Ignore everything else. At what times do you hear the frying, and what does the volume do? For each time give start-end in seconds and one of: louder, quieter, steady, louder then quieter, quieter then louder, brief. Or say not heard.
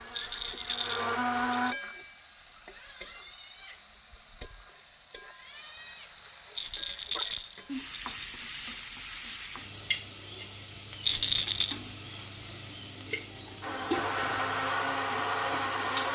0.0-16.1 steady.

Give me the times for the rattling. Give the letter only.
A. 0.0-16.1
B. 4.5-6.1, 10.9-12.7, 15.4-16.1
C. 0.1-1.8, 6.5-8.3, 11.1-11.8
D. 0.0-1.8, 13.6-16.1
C.